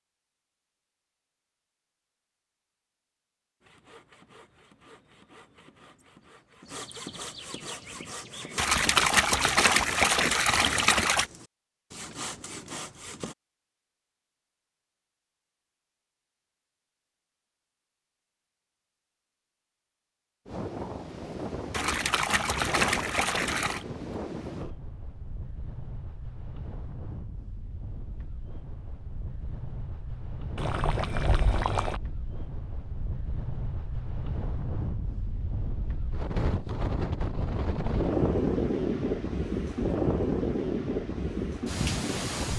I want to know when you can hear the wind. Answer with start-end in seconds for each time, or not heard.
20.4-42.5.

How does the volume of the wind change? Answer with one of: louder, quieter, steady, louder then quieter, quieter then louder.
quieter then louder.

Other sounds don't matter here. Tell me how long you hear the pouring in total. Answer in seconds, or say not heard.
6 s.